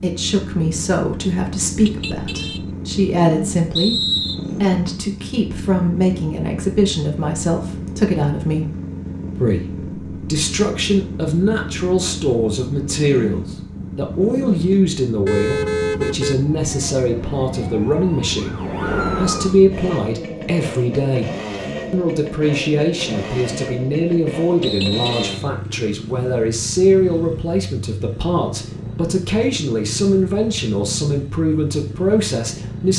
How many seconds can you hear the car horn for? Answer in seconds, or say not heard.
3 s.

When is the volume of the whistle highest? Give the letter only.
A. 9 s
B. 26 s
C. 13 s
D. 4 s
D.